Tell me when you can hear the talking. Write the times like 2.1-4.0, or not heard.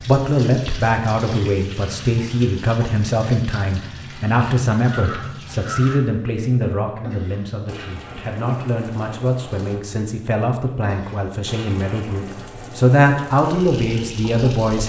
0.0-14.8.